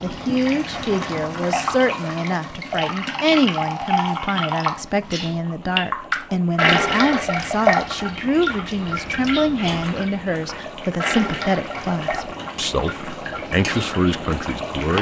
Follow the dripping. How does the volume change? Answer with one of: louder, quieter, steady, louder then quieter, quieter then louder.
louder then quieter.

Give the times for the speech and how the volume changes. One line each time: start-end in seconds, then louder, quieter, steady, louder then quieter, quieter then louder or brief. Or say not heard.
0.0-14.9 steady.